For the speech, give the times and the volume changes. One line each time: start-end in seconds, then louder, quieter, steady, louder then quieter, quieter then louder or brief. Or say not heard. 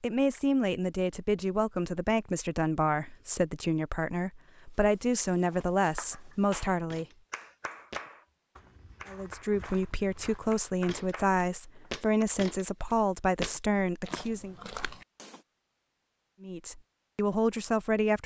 0.0-7.0 steady
9.1-14.6 steady
16.4-18.2 brief.